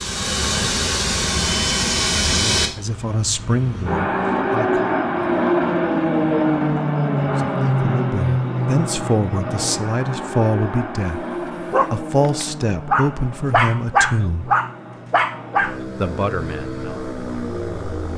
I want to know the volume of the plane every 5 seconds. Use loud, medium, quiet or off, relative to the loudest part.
loud, loud, medium, medium.